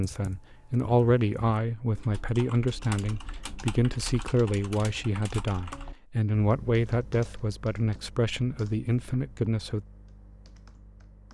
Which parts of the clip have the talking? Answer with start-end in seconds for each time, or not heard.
0.0-9.8.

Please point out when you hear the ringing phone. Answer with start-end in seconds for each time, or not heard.
not heard.